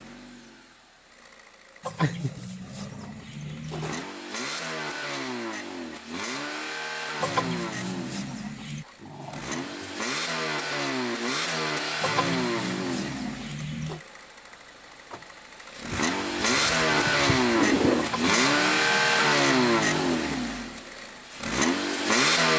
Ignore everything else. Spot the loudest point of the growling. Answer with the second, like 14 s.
18 s.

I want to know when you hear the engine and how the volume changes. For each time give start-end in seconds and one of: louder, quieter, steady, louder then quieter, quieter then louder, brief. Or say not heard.
0.0-22.5 louder.